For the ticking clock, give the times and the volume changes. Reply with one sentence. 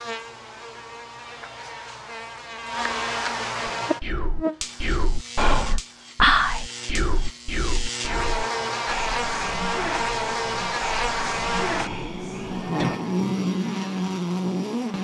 You can't hear the ticking clock here.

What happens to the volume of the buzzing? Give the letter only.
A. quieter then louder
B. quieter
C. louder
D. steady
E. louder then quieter
C.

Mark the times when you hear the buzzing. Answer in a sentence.
You can hear the buzzing from 0.0 to 15.0 s.